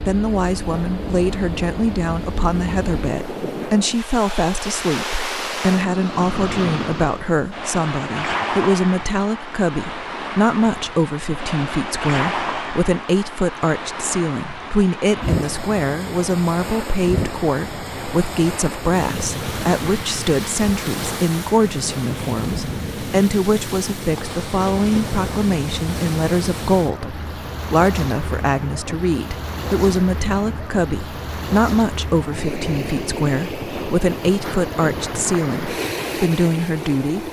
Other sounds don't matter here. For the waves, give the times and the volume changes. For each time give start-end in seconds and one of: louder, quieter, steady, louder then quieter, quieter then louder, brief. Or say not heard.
0.0-37.2 steady.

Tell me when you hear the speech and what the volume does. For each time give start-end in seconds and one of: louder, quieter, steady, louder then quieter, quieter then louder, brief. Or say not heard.
0.0-37.2 steady.